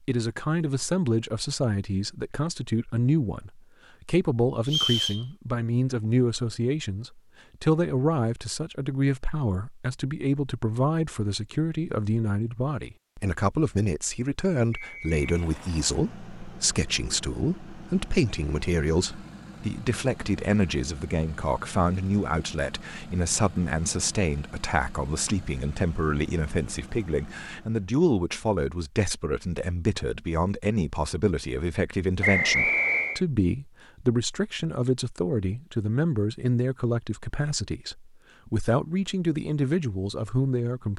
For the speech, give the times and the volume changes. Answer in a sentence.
The speech can be heard from 0.1 to 40.9 s, at a steady volume.